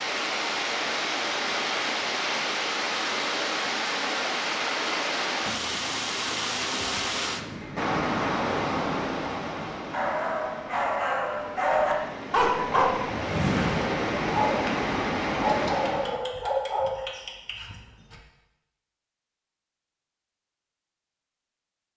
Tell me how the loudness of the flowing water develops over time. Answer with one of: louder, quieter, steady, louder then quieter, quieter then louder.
quieter then louder.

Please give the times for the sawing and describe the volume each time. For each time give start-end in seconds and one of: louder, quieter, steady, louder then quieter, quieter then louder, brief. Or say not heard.
not heard.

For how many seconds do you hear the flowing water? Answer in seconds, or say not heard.
16 s.